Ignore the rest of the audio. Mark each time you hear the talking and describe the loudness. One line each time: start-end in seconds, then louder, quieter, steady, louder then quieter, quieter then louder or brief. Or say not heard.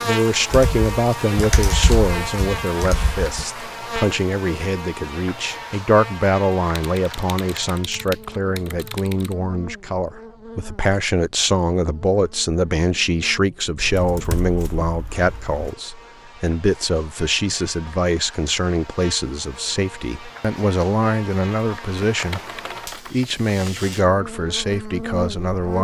0.0-25.7 steady.